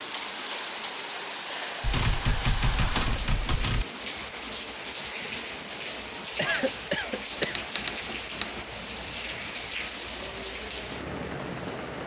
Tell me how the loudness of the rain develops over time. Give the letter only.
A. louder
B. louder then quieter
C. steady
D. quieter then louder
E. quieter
C.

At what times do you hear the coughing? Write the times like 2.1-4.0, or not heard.
6.3-7.6.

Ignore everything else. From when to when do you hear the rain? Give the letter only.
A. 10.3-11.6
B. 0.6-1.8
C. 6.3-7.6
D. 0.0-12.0
D.